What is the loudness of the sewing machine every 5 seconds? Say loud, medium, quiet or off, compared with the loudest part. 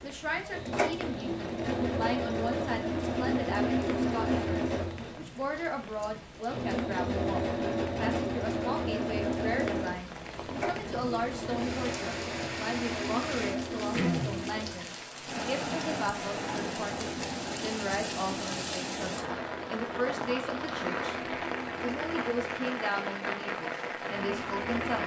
loud, loud, medium, quiet, medium.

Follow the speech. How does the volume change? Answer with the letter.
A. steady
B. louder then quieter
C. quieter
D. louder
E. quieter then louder
A.